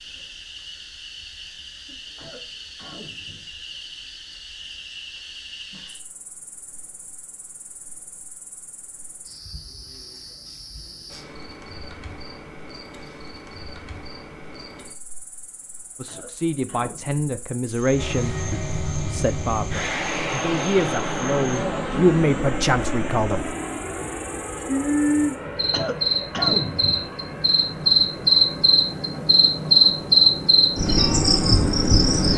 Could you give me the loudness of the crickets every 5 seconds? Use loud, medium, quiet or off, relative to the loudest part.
quiet, quiet, quiet, quiet, quiet, loud, loud.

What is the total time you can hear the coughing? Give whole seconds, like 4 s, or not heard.
4 s.